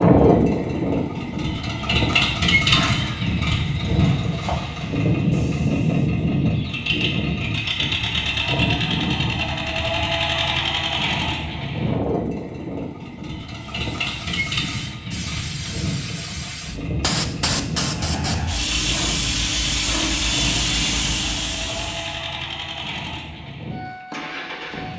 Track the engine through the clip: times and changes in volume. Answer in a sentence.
You can hear the engine from 0.0 to 24.9 s, getting quieter.